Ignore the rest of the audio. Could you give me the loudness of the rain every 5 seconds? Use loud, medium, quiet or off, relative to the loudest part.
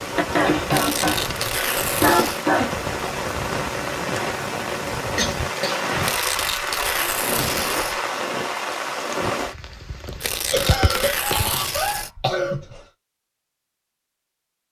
loud, loud, medium.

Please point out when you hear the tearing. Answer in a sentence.
You can hear the tearing from 0.7 to 2.5 s, from 6.0 to 8.0 s and from 10.2 to 12.1 s.